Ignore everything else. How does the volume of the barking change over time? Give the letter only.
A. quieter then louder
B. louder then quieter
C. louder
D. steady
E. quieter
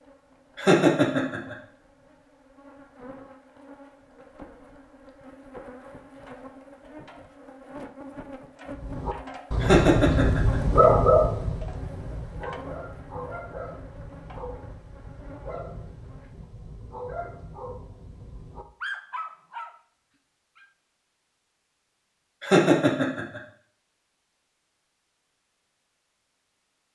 E.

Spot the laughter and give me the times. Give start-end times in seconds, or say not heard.
0.6-1.6, 9.6-10.6, 22.4-23.4.